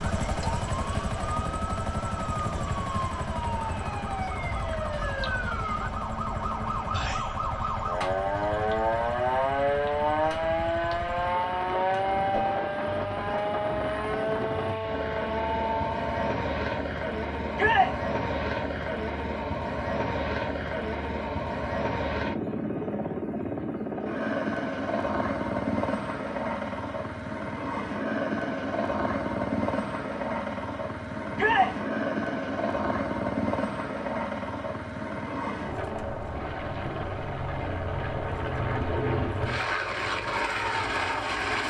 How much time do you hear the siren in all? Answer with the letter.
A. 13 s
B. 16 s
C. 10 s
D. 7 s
B.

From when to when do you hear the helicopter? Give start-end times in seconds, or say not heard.
0.0-41.6.